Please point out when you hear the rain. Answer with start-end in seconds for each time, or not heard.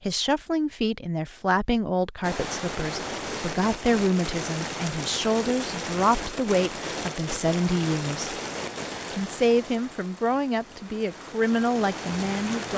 2.2-12.7.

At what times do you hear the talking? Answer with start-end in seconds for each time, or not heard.
0.0-8.3, 9.1-12.7.